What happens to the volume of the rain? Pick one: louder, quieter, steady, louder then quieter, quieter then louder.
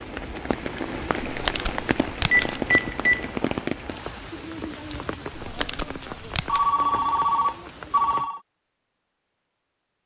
quieter.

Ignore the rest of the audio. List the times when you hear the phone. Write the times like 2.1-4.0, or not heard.
2.3-3.4, 6.5-8.4.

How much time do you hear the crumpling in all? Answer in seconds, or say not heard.
3 s.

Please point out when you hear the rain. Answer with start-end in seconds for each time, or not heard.
0.0-8.3.